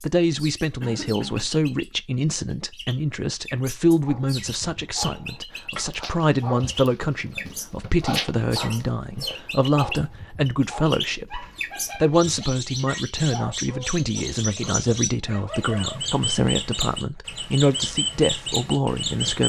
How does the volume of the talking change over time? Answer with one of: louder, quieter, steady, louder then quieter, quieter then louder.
steady.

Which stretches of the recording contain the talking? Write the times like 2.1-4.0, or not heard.
0.0-19.4.